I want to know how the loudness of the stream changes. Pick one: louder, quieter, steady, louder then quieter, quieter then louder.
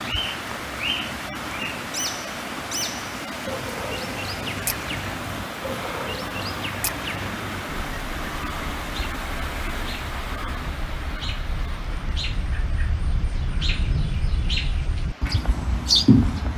quieter.